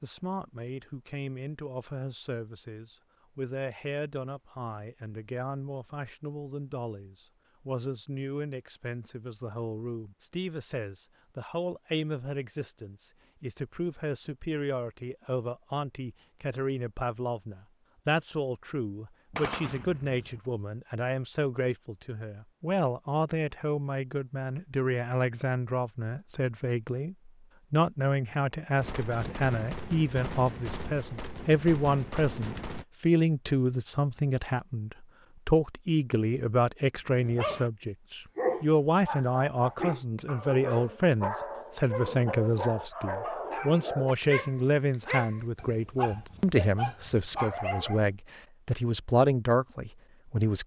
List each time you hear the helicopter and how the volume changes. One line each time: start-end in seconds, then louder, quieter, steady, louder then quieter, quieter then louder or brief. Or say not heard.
not heard.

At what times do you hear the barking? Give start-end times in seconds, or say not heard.
37.1-48.0.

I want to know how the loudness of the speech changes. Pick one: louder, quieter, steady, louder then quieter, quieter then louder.
louder.